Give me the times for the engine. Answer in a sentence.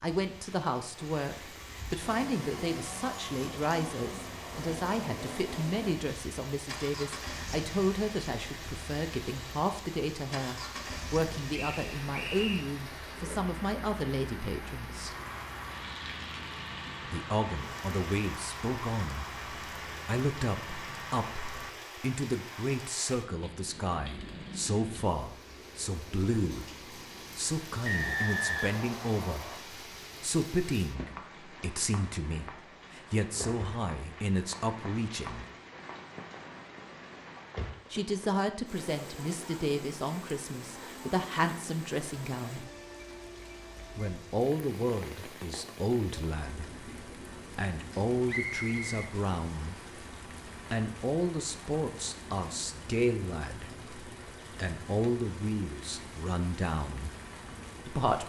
You can hear the engine from 2.0 to 21.8 s.